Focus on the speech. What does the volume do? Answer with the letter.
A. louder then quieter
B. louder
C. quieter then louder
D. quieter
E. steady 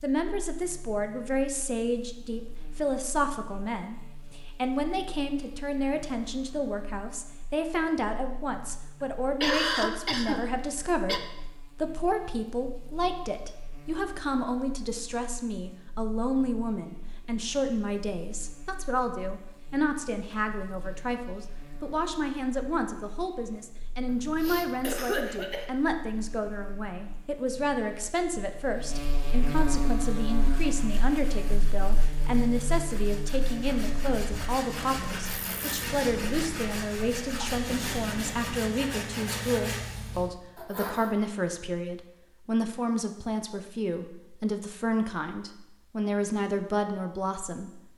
E.